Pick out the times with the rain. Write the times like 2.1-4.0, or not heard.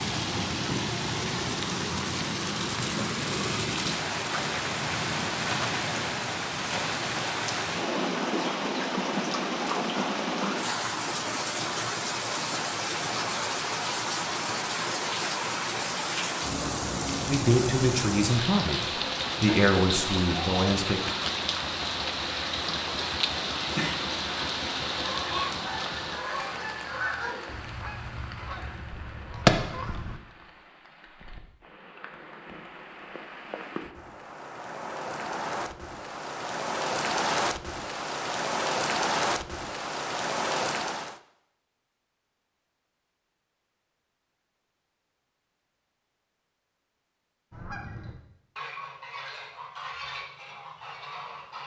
0.0-41.2.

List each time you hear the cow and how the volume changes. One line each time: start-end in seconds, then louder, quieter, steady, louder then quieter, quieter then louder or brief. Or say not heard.
not heard.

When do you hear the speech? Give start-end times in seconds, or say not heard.
17.2-21.0.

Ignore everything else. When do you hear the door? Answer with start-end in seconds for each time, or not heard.
not heard.